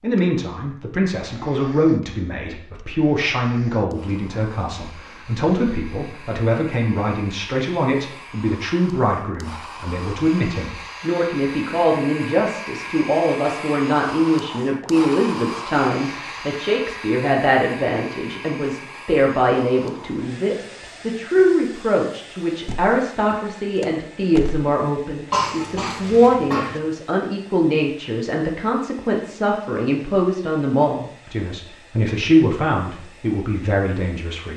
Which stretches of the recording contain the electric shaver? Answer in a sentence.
The electric shaver can't be heard in this clip.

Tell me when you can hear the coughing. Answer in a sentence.
You can hear the coughing from 25.3 to 26.8 s.